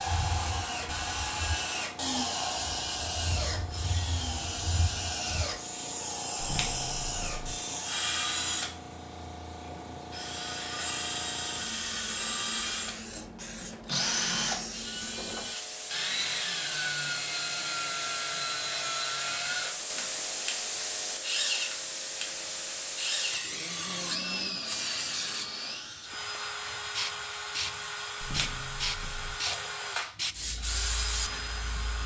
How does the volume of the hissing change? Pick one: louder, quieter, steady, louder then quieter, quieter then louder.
louder.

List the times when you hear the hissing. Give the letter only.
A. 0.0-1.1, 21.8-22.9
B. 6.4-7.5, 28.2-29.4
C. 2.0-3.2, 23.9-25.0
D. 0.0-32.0
D.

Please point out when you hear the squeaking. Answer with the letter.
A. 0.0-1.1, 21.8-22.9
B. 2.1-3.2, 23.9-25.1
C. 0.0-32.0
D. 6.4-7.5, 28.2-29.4
D.